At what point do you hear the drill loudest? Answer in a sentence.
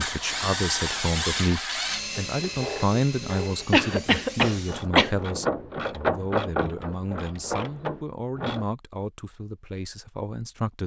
The volume of the drill peaks at 1 second.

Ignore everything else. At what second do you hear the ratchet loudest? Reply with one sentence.
The volume of the ratchet peaks at 6 seconds.